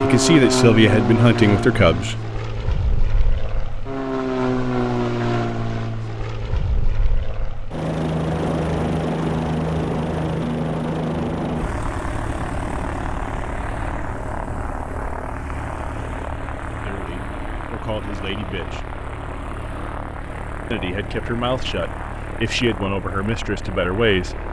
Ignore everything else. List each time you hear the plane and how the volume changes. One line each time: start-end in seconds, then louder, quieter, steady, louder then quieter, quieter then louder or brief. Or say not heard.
0.0-24.4 quieter.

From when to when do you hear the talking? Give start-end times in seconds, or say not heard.
0.0-2.1, 16.8-18.9, 20.7-24.4.